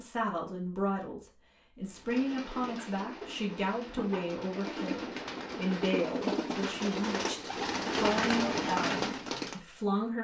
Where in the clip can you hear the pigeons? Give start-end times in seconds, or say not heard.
1.9-9.6.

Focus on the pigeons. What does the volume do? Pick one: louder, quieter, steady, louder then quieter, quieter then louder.
louder.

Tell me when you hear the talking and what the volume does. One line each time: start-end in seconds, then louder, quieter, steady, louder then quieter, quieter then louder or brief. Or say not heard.
0.0-10.1 steady.